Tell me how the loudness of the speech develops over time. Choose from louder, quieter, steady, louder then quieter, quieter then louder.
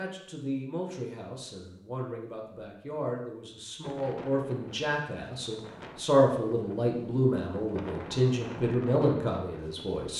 louder.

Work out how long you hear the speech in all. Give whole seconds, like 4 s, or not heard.
10 s.